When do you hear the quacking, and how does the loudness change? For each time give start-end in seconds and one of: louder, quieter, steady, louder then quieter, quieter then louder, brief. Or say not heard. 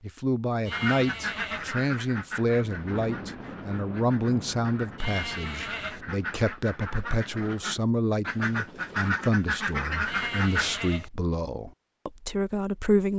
0.7-10.8 quieter then louder.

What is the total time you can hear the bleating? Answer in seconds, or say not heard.
3 s.